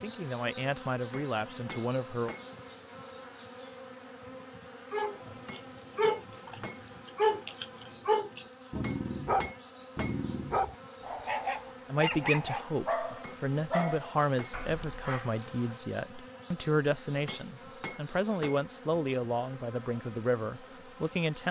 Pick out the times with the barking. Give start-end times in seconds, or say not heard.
4.9-15.3.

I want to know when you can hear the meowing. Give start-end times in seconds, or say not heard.
not heard.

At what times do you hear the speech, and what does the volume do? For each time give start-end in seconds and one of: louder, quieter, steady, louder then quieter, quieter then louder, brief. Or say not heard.
0.0-2.4 brief
11.9-21.4 steady.